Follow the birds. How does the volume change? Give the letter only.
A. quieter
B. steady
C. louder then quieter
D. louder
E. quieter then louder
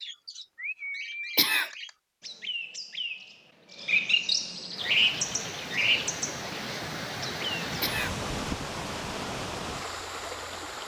D.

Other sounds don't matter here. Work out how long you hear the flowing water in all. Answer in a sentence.
The flowing water can be heard for 6 seconds in total.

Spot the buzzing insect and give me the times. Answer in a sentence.
You can't hear the buzzing insect here.